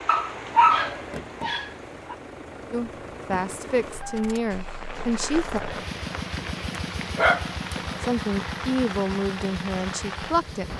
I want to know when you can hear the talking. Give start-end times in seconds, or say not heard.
2.7-5.6, 8.0-10.7.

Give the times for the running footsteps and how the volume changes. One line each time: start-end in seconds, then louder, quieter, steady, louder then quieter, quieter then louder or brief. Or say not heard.
not heard.